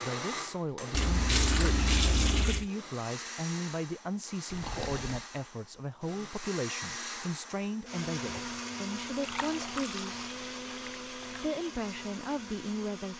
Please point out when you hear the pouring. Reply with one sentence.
You can hear the pouring from 0.9 to 2.7 s, from 4.5 to 5.2 s and from 9.2 to 11.6 s.